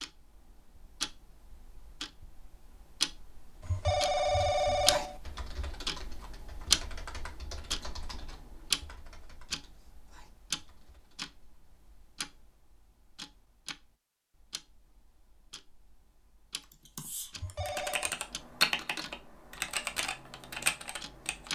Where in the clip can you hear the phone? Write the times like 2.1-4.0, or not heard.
3.6-5.2, 17.4-18.1.